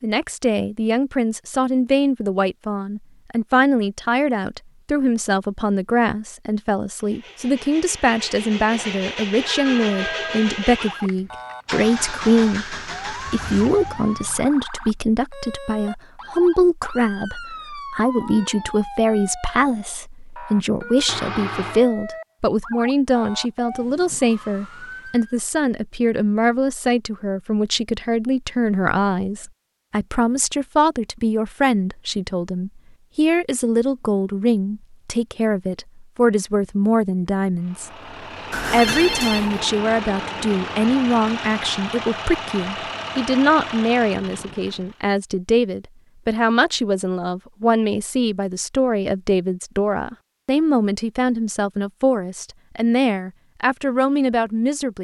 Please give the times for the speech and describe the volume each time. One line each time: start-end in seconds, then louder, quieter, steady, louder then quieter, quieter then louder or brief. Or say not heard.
0.0-37.9 steady
38.7-54.9 steady.